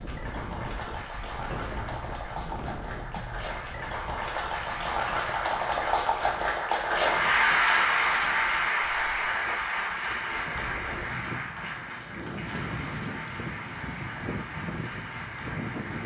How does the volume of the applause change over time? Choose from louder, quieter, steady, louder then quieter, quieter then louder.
louder then quieter.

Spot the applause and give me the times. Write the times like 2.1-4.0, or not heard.
0.0-16.0.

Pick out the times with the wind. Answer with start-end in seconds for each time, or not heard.
0.0-16.0.